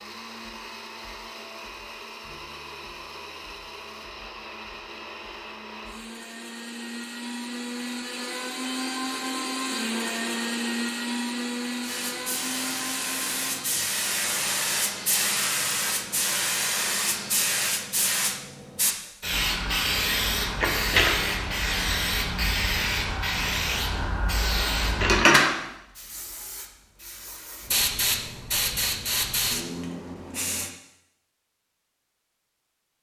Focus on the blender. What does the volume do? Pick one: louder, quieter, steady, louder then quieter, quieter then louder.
louder then quieter.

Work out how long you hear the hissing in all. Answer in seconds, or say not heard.
19 s.